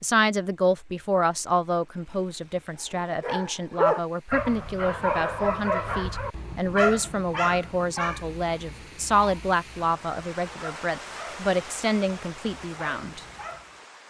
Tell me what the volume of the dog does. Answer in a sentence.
The loudness of the dog goes down.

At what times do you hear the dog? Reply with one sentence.
You can hear the dog from 3.2 to 13.7 s.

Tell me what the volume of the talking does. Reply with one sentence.
The loudness of the talking stays about the same.